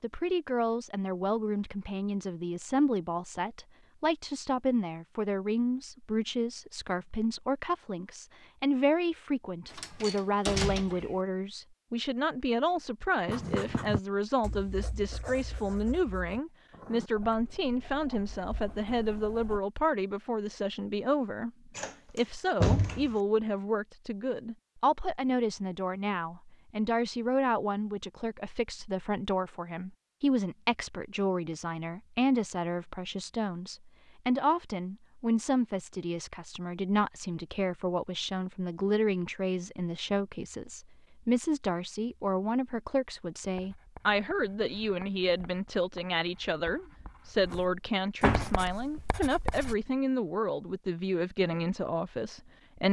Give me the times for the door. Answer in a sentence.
You can hear the door from 9.7 to 11.2 s, from 21.8 to 23.1 s and from 48.2 to 49.0 s.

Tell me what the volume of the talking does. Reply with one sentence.
The loudness of the talking stays about the same.